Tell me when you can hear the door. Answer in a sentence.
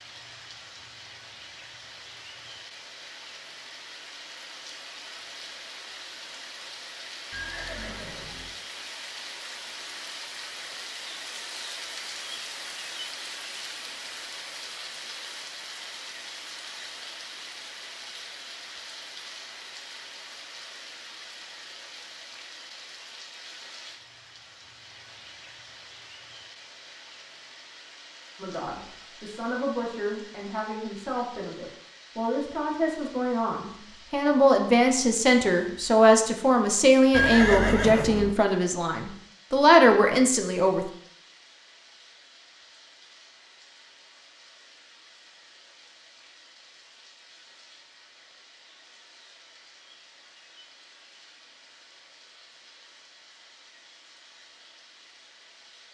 The door can't be heard in this clip.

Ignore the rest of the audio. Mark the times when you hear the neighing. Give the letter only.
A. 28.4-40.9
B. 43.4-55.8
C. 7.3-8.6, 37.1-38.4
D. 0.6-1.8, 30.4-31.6
C.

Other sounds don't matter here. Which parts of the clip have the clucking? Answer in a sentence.
The clucking can't be heard in this clip.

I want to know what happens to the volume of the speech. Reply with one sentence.
The loudness of the speech goes up.